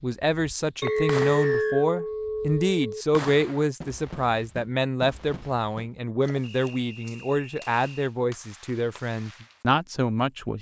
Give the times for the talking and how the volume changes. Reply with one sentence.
The talking can be heard from 0.0 to 10.5 s, at a steady volume.